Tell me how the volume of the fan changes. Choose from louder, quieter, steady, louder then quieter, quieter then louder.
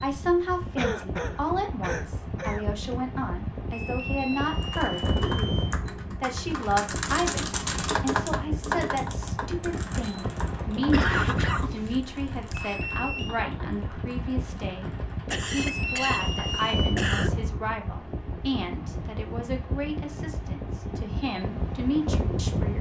steady.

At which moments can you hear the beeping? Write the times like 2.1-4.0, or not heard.
3.7-5.7, 12.5-13.4, 15.6-17.0.